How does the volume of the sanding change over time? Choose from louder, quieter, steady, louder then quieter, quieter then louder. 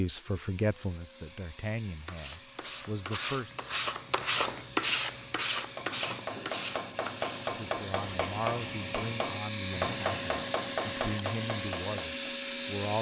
louder then quieter.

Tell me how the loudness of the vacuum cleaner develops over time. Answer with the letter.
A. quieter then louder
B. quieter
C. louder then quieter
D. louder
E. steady
D.